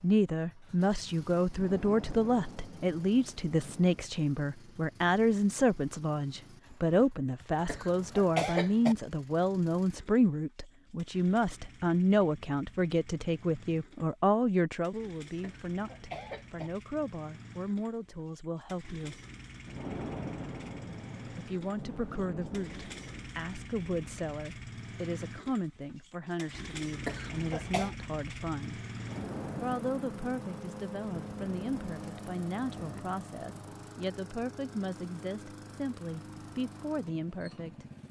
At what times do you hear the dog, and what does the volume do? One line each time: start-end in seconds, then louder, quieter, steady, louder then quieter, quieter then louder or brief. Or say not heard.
not heard.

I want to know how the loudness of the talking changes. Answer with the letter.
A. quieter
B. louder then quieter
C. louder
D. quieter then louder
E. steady
A.